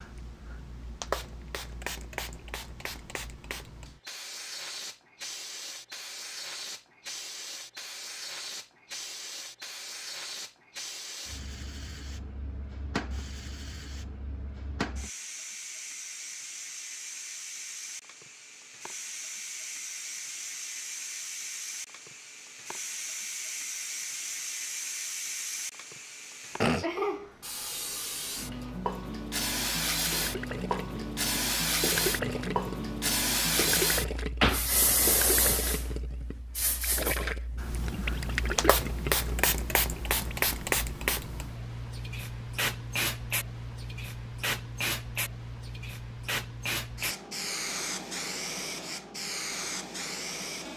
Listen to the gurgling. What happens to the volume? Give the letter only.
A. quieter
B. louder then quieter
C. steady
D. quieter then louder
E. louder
C.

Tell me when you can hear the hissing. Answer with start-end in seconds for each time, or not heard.
0.0-50.7.